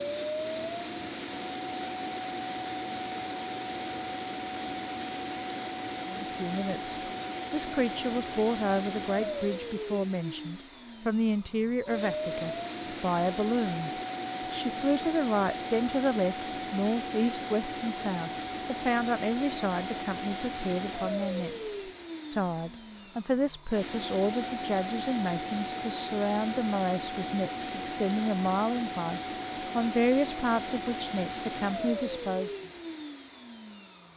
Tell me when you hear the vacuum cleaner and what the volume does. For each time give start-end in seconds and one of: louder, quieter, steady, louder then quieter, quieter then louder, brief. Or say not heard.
0.0-34.1 steady.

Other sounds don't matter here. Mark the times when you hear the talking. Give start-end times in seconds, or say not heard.
6.0-13.9, 14.5-32.5.